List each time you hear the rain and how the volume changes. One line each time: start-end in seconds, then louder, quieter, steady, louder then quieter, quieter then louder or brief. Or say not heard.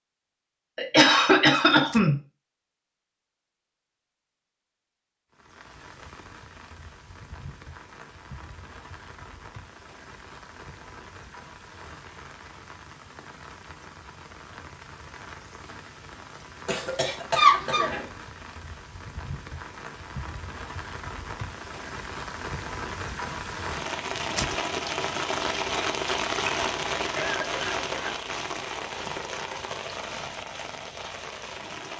5.3-31.9 louder.